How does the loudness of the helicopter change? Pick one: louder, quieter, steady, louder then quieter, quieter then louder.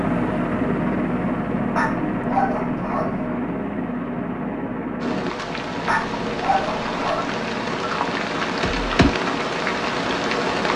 quieter.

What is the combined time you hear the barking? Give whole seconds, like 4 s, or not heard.
3 s.